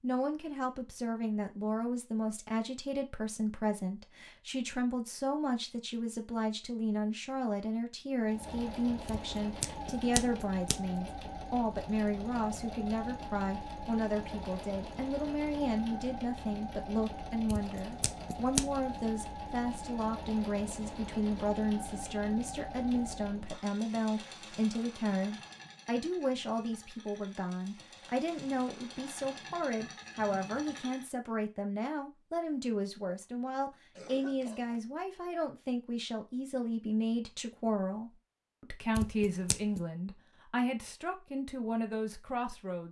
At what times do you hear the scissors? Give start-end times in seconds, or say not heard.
9.2-10.8, 17.4-18.6, 39.0-39.8.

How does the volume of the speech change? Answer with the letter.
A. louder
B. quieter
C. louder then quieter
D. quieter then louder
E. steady
E.